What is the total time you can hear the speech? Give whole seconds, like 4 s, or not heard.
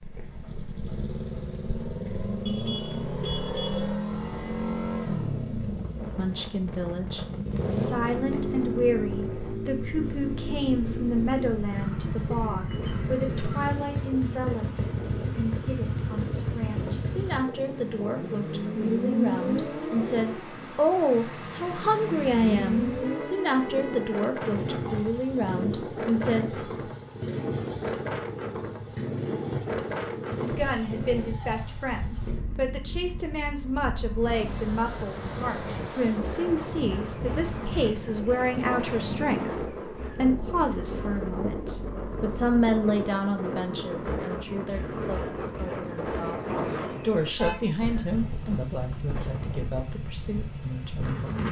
41 s.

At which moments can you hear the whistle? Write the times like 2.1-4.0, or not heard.
not heard.